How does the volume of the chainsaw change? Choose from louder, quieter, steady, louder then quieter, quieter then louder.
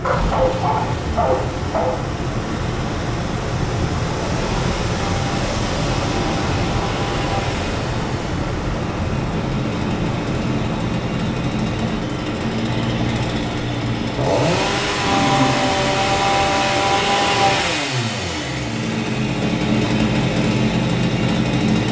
louder.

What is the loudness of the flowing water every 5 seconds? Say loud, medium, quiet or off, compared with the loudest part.
loud, loud, medium, off, off.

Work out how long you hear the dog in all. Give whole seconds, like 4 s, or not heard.
3 s.